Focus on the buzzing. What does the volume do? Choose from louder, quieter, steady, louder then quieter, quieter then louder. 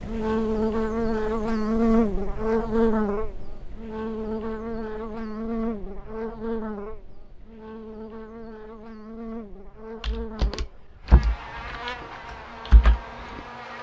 quieter.